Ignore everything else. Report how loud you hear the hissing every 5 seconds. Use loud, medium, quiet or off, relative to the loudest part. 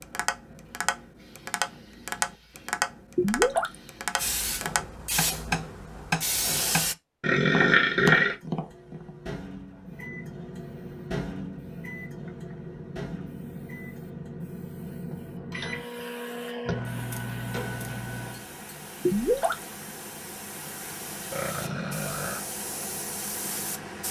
medium, loud, medium, medium, medium.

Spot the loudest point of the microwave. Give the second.
17 s.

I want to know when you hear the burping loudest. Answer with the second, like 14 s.
8 s.